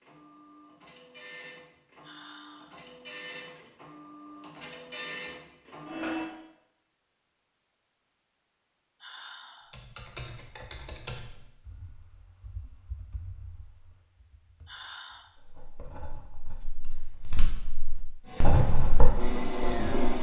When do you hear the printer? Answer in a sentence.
The printer can be heard from 0.0 to 6.2 s and from 18.2 to 20.1 s.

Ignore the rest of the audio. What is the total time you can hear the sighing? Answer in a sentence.
You can hear the sighing for 2 seconds altogether.